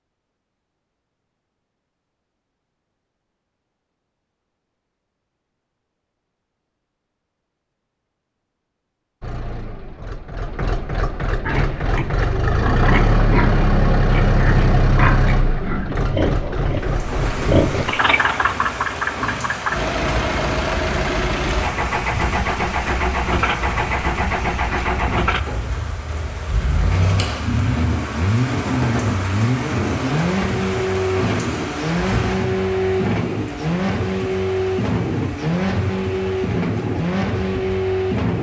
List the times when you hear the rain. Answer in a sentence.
You can hear the rain from 16.8 to 38.3 s.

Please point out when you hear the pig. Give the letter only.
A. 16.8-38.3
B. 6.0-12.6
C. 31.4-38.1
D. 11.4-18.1
D.